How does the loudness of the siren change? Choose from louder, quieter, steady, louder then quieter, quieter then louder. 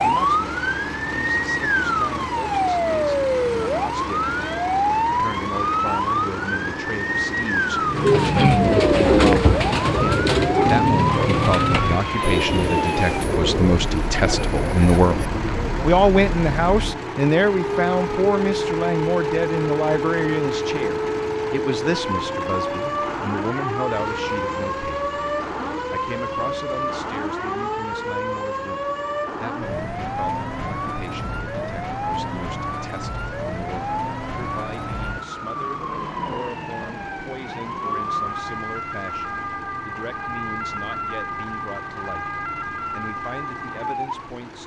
quieter.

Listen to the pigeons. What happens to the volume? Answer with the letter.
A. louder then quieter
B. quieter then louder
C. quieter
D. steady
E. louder
C.